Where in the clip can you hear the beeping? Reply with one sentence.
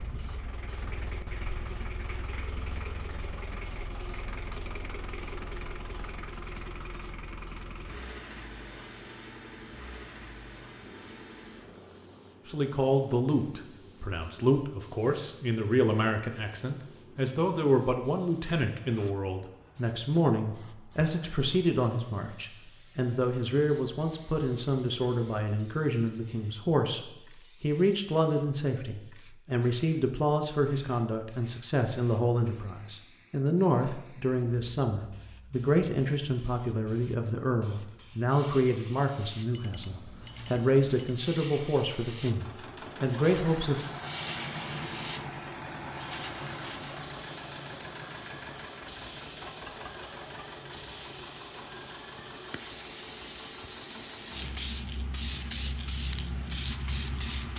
The beeping can be heard from 39.5 to 41.2 s.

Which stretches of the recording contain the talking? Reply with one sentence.
The talking can be heard from 12.4 to 27.0 s and from 27.6 to 43.9 s.